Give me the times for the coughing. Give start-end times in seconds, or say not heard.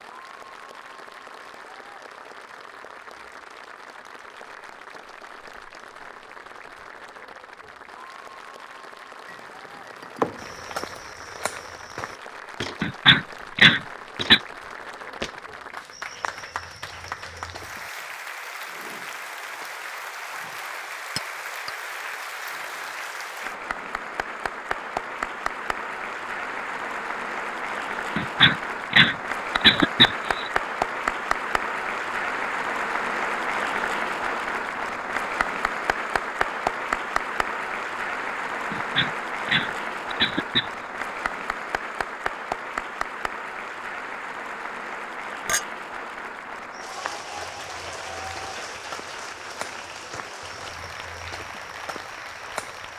12.8-14.4, 28.1-30.5, 38.7-40.7.